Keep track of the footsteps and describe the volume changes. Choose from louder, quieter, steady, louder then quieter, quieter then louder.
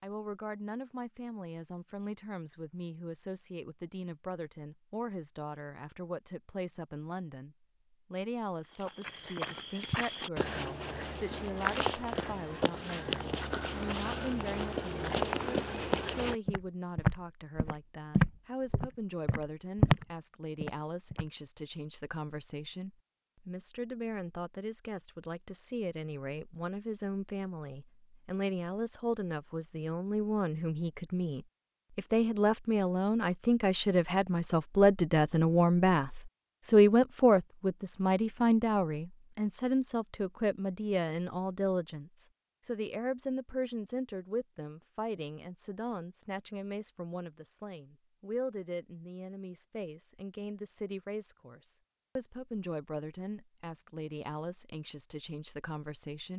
louder.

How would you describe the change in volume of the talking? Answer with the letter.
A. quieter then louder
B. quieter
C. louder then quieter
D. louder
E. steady
C.